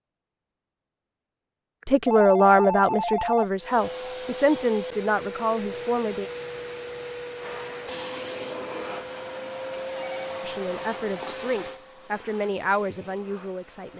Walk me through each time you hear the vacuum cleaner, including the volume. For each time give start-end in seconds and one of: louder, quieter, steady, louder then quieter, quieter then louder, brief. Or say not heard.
3.5-13.9 quieter.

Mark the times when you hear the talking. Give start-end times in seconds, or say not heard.
1.9-6.3, 10.4-13.9.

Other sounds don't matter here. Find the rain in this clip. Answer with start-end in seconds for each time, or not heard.
not heard.